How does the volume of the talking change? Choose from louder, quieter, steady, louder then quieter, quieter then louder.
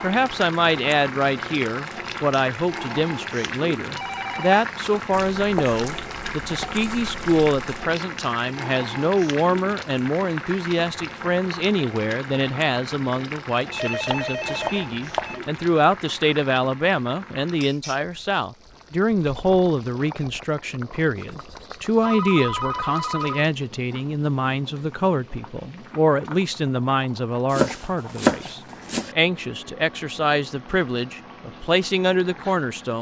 steady.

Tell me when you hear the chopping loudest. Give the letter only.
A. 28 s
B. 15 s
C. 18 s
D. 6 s
A.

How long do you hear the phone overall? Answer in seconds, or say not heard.
4 s.